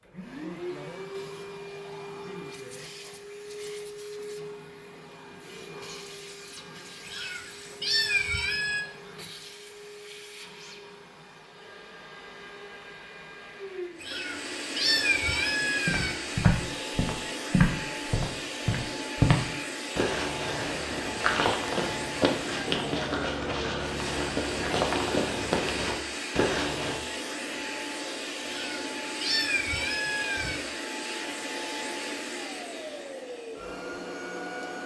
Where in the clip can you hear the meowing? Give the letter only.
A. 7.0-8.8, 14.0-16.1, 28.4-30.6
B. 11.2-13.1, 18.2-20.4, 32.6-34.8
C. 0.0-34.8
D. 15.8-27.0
A.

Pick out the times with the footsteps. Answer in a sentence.
The footsteps can be heard from 15.8 to 27.0 s.